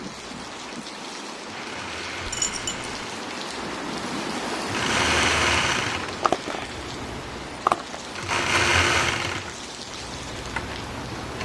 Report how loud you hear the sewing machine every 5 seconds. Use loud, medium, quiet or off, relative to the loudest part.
medium, loud, medium.